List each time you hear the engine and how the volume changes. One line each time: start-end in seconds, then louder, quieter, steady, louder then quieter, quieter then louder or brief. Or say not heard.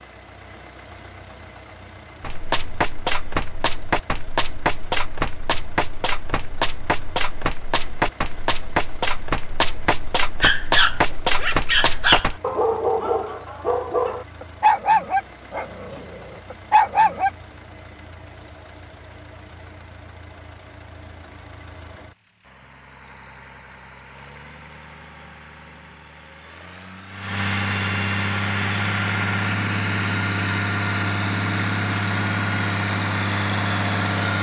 0.0-34.3 louder.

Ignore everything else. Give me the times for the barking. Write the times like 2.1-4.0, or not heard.
10.4-17.3.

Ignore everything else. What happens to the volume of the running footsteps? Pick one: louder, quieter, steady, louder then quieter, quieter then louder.
steady.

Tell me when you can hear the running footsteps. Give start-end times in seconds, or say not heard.
2.2-12.4.